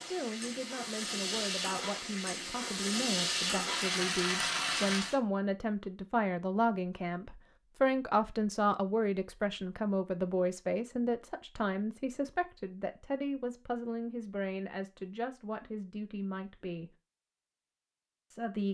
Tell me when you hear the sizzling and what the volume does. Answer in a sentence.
The sizzling can be heard from 0.0 to 5.2 s, getting louder.